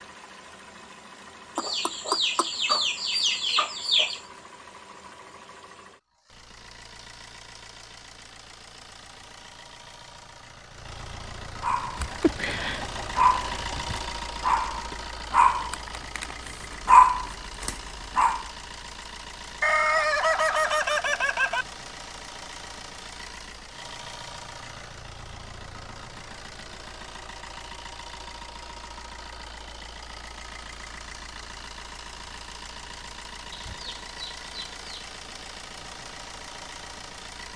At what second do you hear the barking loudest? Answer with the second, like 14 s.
17 s.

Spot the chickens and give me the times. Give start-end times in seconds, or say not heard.
1.6-4.2, 11.9-14.0, 19.6-21.6, 33.5-34.9.